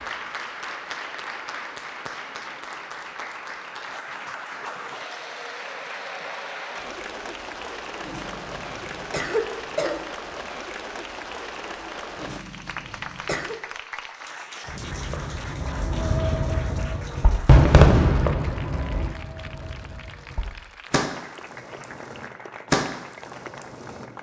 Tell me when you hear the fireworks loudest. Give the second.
18 s.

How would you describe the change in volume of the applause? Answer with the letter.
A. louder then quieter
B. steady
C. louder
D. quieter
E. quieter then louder
D.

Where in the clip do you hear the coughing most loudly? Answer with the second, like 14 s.
9 s.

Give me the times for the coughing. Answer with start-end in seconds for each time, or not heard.
8.0-10.0, 12.2-13.6.